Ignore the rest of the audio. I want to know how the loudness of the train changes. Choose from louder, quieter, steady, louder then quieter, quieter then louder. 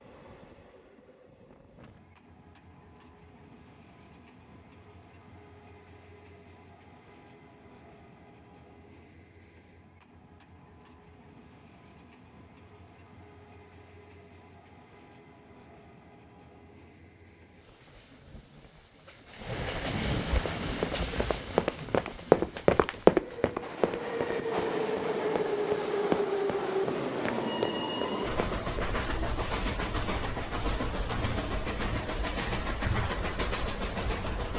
louder.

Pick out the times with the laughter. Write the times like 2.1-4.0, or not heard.
not heard.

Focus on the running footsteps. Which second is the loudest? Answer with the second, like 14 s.
23 s.